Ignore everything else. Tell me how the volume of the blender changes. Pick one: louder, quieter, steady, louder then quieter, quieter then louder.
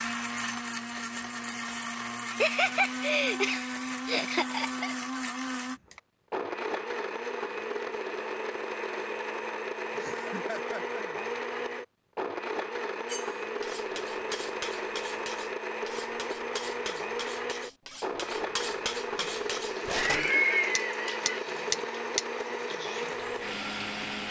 steady.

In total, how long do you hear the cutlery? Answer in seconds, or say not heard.
9 s.